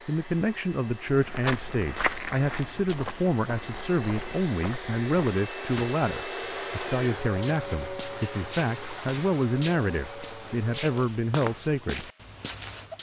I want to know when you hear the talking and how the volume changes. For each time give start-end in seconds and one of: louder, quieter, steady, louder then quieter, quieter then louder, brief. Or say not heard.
0.1-12.1 steady.